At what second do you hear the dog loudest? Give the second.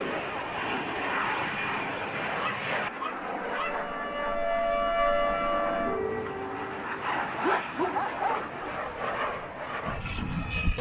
8 s.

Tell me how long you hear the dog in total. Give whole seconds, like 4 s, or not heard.
3 s.